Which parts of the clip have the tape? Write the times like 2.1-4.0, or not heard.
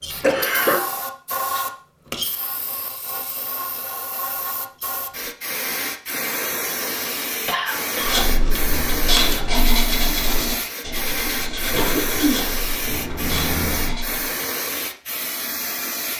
not heard.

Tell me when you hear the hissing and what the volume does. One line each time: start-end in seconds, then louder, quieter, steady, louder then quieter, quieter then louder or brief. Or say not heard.
0.0-16.1 steady.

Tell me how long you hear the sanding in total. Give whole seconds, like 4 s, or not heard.
6 s.